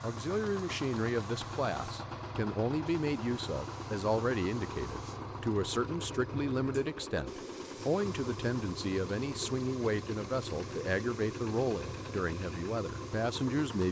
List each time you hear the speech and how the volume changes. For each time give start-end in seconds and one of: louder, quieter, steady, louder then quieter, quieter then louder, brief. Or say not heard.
0.0-13.8 steady.